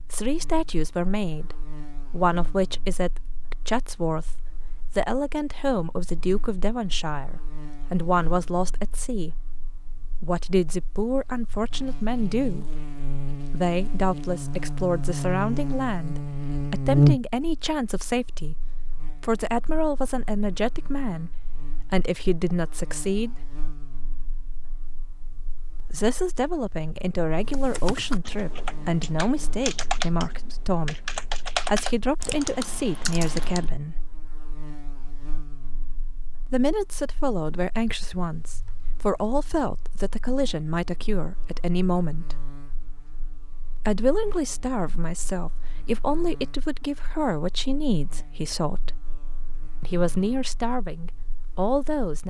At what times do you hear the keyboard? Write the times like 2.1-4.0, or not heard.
27.5-33.7.